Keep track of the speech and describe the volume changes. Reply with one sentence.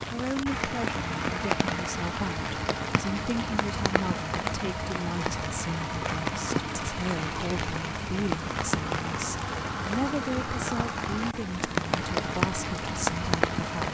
The loudness of the speech stays about the same.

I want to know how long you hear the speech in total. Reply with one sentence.
You can hear the speech for 14 seconds altogether.